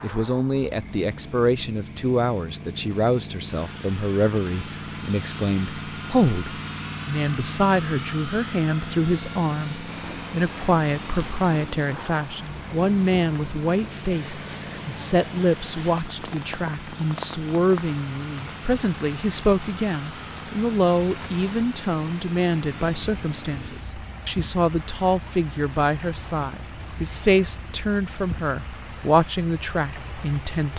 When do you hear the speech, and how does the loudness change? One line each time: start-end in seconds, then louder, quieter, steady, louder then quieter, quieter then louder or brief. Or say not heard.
0.0-30.7 steady.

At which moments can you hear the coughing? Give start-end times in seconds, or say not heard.
not heard.